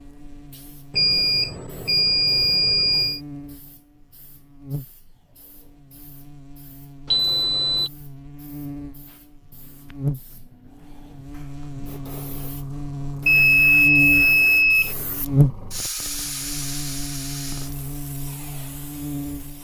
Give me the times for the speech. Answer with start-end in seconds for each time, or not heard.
not heard.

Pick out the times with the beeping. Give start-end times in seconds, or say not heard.
0.9-3.2, 7.1-7.9, 13.2-14.9.